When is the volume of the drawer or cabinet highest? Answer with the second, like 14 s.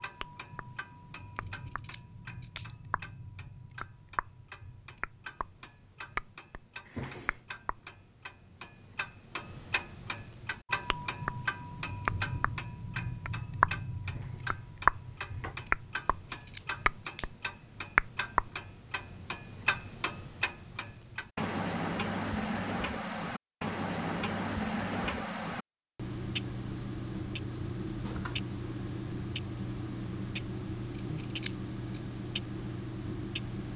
7 s.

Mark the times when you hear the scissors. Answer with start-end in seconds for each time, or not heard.
1.4-2.7, 16.1-17.2, 30.9-32.0.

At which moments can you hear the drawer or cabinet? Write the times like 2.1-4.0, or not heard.
6.8-7.5, 14.1-15.6, 28.0-28.5.